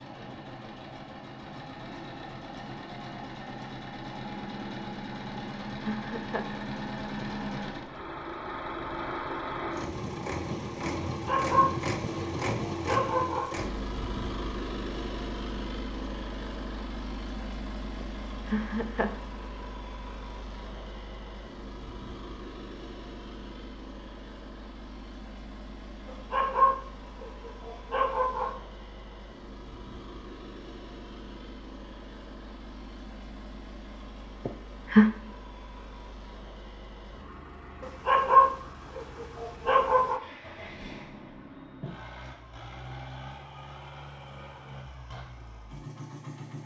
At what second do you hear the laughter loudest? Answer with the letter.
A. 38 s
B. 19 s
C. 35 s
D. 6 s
C.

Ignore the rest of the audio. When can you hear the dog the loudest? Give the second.
38 s.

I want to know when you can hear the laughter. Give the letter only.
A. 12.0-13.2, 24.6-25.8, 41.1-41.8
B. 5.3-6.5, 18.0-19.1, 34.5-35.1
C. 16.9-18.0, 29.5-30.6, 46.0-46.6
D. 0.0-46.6
B.